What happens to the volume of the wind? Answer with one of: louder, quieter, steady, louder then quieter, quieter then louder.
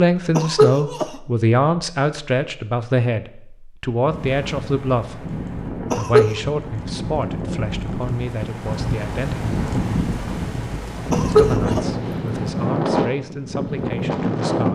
louder.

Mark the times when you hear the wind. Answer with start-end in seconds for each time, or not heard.
4.0-14.6.